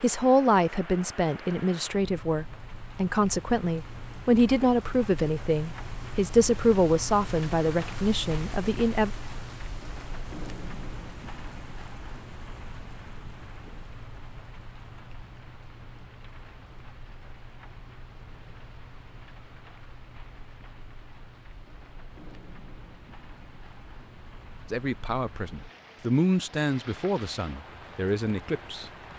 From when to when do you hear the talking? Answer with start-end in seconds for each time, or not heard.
0.0-9.1, 24.7-28.9.